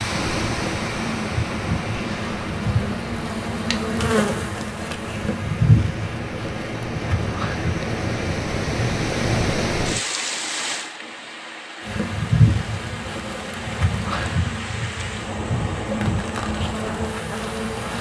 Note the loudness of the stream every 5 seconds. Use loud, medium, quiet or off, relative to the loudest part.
loud, loud, medium, medium.